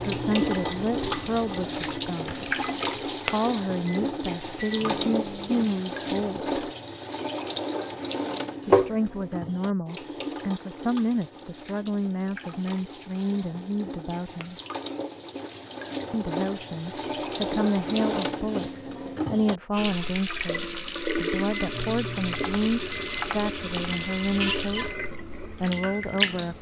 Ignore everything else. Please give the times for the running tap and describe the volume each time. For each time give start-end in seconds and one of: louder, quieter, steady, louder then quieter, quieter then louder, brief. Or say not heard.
0.0-26.5 quieter then louder.